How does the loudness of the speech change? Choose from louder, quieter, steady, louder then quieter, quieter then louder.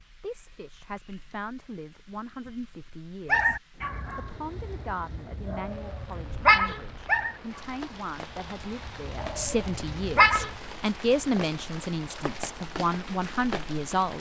louder.